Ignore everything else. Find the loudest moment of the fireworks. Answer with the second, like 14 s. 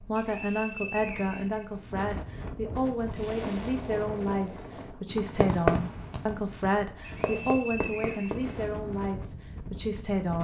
6 s.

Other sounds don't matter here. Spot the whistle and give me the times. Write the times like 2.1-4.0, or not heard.
0.1-2.1, 7.0-8.6.